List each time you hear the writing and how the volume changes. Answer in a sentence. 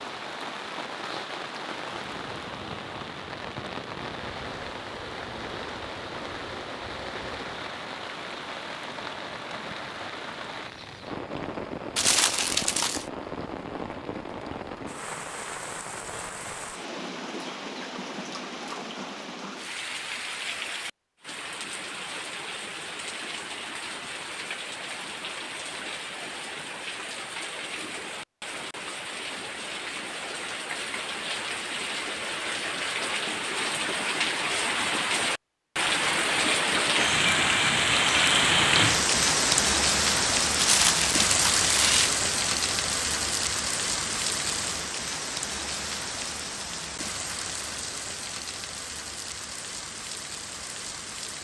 You can't hear the writing here.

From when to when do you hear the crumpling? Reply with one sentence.
The crumpling can be heard from 11.9 to 13.1 s and from 40.5 to 42.1 s.